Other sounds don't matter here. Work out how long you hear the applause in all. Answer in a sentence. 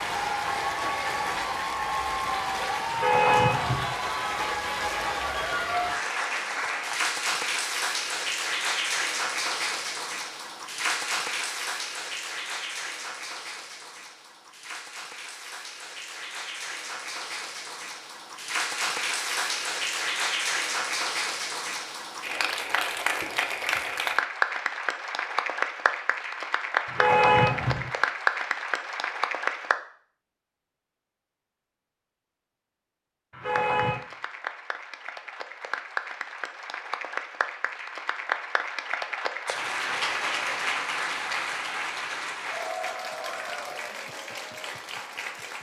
You can hear the applause for 42 seconds altogether.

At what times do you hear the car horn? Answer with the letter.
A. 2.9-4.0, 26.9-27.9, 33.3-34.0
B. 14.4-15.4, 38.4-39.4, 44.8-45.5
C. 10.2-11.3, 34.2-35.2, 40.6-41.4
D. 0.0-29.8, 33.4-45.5
A.